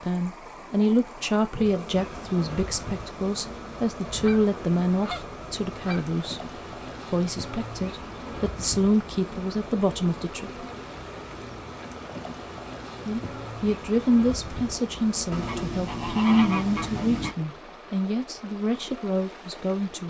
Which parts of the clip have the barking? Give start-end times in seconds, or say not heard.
not heard.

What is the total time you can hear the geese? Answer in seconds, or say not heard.
4 s.